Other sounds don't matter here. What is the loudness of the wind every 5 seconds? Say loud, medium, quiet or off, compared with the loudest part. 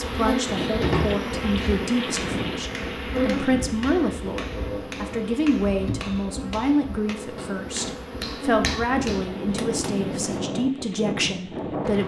loud, medium, loud.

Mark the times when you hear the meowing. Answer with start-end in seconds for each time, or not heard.
not heard.